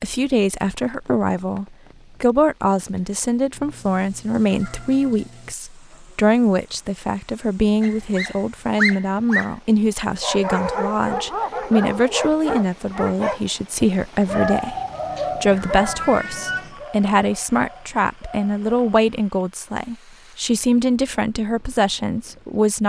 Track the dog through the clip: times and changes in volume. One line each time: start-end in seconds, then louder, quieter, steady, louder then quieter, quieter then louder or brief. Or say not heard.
7.8-19.0 quieter.